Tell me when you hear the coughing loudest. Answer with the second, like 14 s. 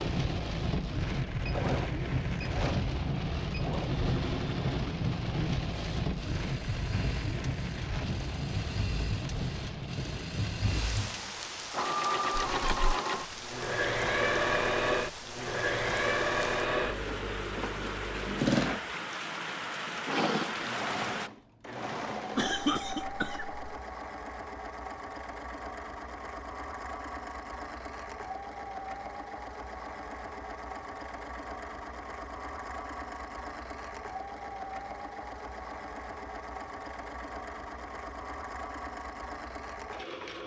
23 s.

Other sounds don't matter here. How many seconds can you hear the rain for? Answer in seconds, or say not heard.
21 s.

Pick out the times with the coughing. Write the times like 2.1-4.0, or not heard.
12.3-12.9, 22.4-23.6.